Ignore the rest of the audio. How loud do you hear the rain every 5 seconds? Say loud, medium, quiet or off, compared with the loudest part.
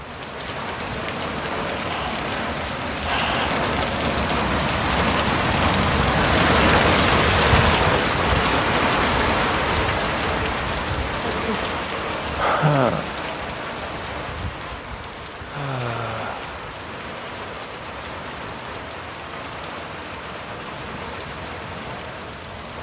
medium, loud, medium, quiet, quiet.